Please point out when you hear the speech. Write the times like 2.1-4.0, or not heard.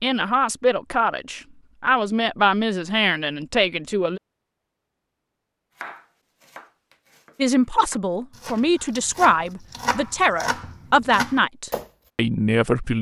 0.0-4.2, 7.3-12.9.